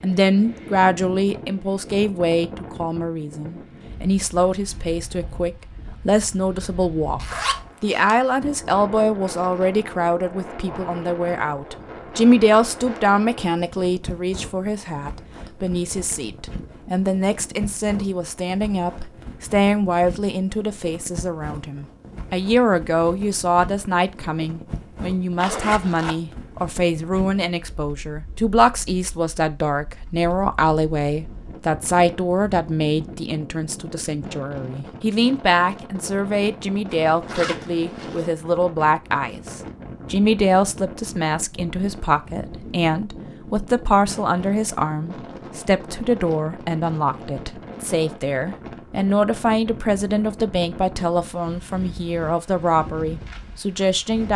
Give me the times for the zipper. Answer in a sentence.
You can hear the zipper from 7.2 to 8.2 s, from 25.4 to 26.1 s and from 36.9 to 38.3 s.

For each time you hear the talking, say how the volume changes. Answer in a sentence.
The talking can be heard from 0.0 to 54.3 s, at a steady volume.